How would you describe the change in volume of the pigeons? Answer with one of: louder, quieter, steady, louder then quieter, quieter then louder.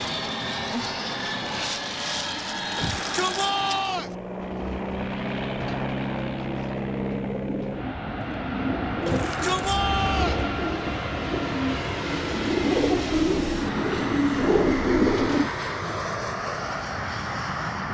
louder.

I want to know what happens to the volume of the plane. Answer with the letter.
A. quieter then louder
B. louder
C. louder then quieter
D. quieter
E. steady
E.